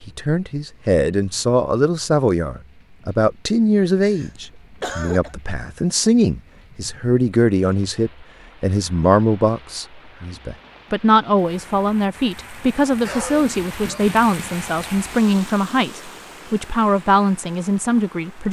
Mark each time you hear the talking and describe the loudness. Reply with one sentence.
You can hear the talking from 0.0 to 18.4 s, at a steady volume.